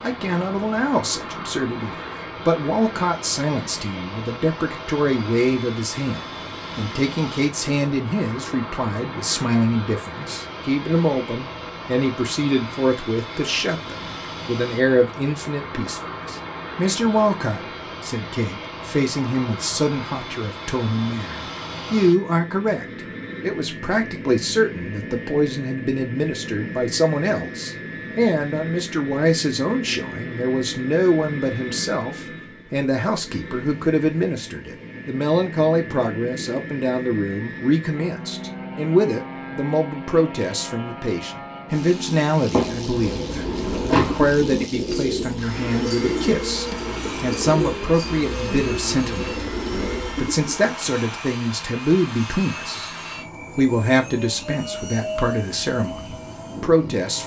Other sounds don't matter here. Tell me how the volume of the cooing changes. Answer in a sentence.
The loudness of the cooing stays about the same.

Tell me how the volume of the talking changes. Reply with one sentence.
The volume of the talking stays about the same.